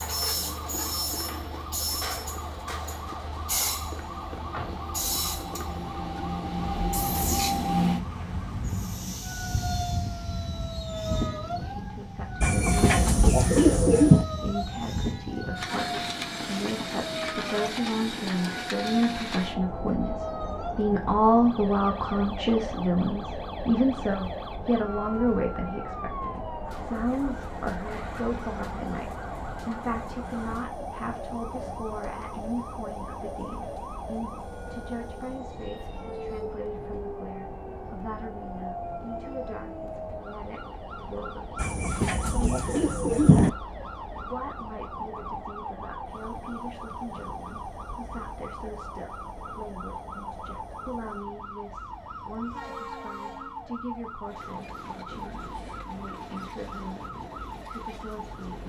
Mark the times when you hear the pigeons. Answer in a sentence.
You can hear the pigeons from 12.4 to 14.2 s and from 41.5 to 43.5 s.